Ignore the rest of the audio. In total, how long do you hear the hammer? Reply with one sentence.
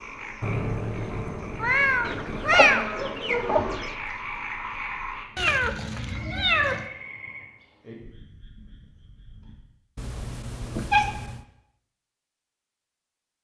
You can't hear the hammer here.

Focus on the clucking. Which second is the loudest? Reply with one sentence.
The volume of the clucking peaks at 3 seconds.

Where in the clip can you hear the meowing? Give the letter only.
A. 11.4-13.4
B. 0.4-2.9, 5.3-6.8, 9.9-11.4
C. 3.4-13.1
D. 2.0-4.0
B.